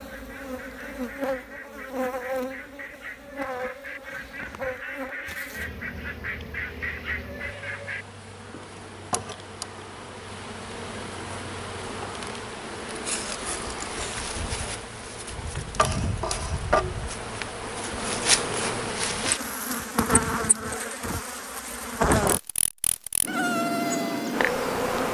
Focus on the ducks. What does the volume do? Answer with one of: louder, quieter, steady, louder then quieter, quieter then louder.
louder.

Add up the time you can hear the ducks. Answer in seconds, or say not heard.
8 s.